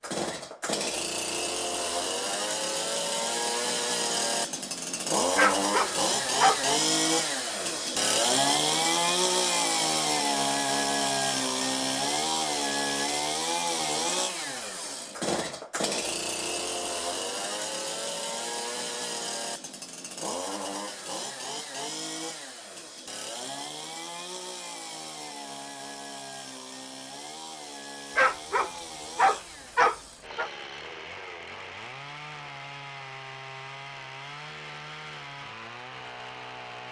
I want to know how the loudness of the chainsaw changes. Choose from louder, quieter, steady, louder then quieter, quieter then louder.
quieter.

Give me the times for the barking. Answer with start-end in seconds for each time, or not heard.
5.3-6.6, 28.1-30.5.